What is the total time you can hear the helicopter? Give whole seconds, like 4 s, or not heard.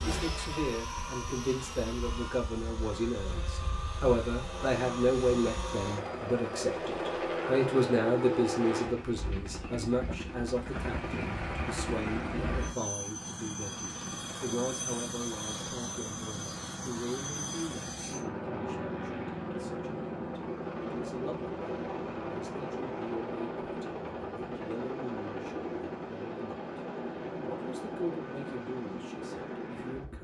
30 s.